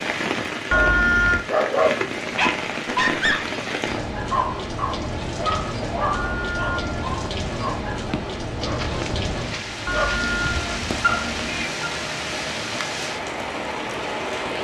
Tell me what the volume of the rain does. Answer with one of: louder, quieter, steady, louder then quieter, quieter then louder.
steady.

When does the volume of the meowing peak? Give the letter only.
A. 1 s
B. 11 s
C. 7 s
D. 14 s
A.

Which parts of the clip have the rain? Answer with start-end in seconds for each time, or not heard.
0.0-14.5.